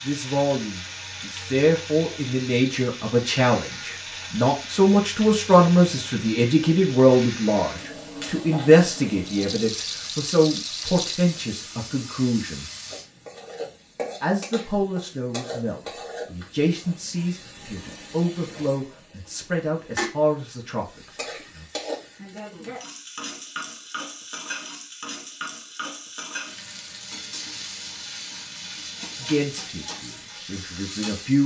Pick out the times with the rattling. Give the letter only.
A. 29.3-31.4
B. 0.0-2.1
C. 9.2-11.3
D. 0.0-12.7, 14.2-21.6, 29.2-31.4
C.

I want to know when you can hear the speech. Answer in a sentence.
The speech can be heard from 0.0 to 12.7 s, from 14.2 to 21.6 s and from 29.2 to 31.4 s.